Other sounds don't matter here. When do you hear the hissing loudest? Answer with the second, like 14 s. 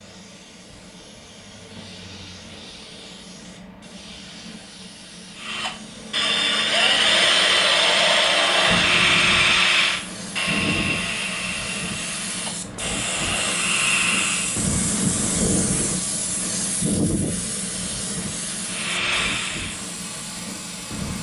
15 s.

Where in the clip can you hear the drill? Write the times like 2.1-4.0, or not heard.
5.3-14.6, 18.4-21.1.